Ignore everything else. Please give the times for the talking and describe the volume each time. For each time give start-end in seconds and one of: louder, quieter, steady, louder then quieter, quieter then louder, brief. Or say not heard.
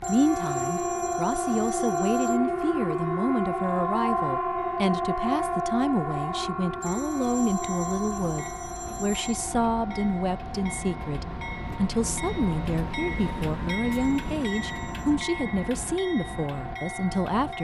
0.0-17.5 steady.